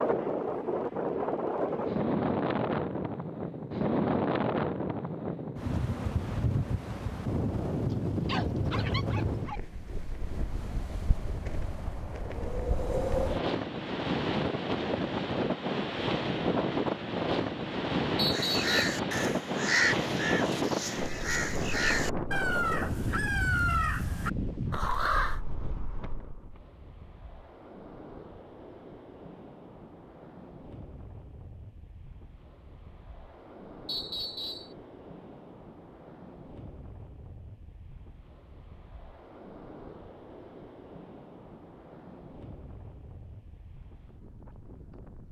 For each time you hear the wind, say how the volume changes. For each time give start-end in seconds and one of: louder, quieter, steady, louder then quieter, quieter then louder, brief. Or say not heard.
0.0-45.2 quieter.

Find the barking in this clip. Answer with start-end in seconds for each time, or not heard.
7.9-9.6.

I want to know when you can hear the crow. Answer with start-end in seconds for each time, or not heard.
18.3-25.4.